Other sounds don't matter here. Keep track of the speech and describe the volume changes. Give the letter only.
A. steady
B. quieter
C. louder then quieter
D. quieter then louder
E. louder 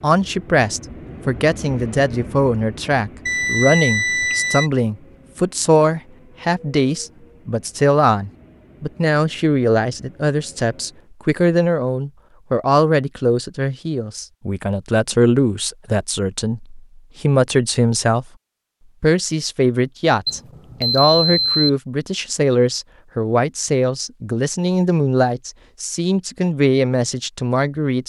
A.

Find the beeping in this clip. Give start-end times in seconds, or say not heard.
3.2-4.7, 20.2-21.7.